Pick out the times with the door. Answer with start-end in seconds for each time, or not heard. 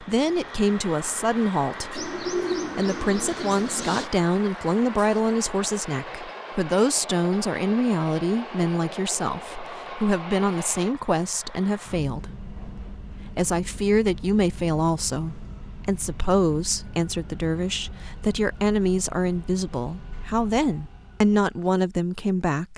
not heard.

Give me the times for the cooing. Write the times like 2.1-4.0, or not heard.
1.9-4.1.